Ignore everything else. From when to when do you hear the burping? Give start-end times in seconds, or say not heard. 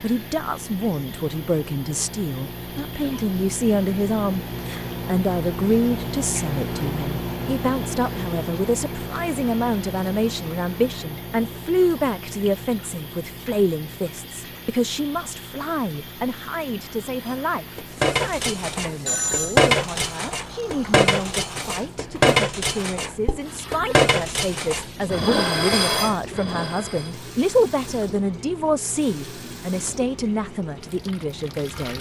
not heard.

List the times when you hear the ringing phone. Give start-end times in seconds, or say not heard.
18.7-19.6.